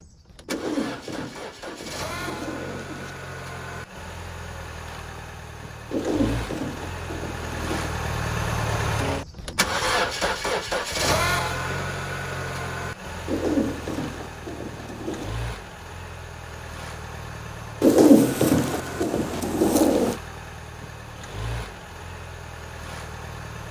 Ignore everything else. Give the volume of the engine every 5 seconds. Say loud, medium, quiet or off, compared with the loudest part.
medium, loud, loud, medium, medium.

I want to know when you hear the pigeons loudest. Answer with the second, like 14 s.
18 s.